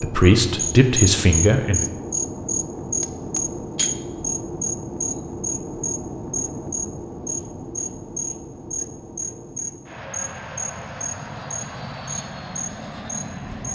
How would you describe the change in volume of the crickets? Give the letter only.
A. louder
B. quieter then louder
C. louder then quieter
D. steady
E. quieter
E.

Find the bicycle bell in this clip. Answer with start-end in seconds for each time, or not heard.
3.0-4.0.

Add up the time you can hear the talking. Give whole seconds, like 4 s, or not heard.
2 s.